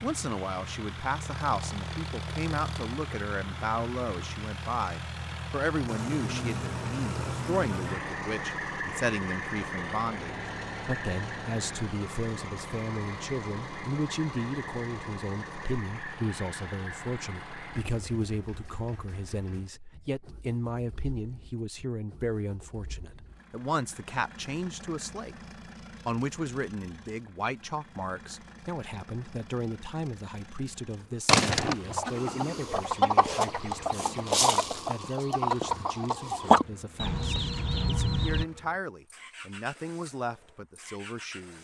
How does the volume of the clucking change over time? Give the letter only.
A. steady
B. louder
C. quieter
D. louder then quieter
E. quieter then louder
D.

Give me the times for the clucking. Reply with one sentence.
You can hear the clucking from 31.2 to 38.5 s.